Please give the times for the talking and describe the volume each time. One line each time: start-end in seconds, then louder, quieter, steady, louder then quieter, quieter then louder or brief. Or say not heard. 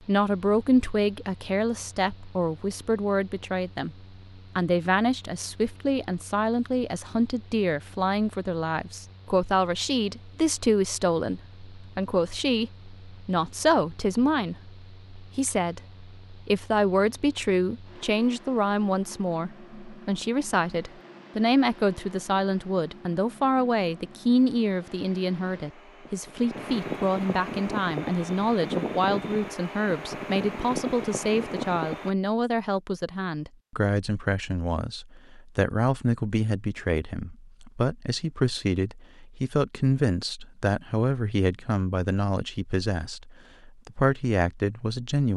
0.1-45.3 steady.